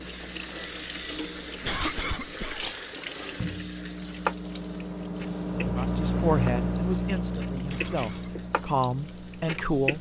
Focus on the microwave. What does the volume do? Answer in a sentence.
The volume of the microwave goes up, then down.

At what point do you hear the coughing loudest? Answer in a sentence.
The loudest moment of the coughing is at 2 seconds.